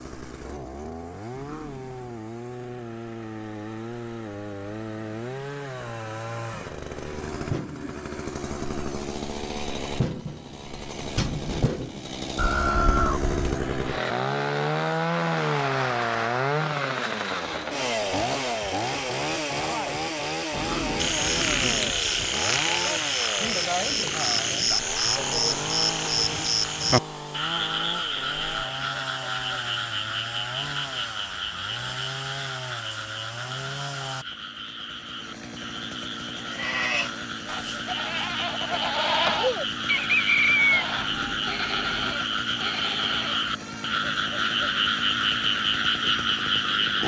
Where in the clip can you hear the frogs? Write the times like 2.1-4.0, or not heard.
20.9-47.0.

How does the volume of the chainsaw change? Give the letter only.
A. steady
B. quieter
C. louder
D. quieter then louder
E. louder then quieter
E.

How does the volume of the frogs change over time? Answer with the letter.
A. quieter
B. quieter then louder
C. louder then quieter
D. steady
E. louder
B.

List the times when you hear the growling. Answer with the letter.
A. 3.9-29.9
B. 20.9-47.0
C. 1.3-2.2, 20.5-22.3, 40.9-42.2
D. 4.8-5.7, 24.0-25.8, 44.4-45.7
C.